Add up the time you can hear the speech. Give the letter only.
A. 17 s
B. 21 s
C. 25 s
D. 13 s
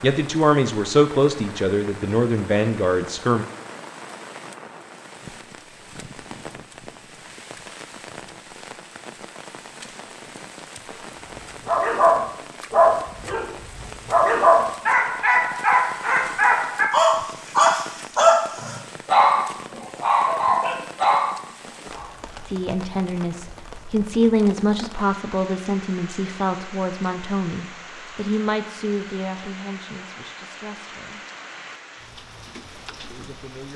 D.